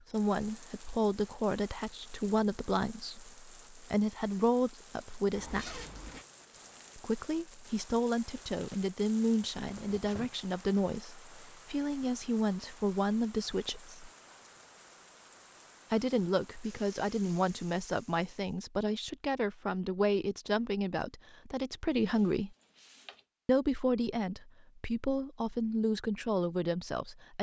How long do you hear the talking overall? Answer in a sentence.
You can hear the talking for 23 seconds altogether.